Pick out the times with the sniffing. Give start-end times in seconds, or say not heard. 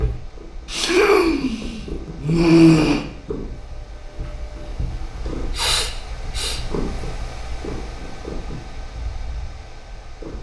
0.7-3.0, 5.5-6.6.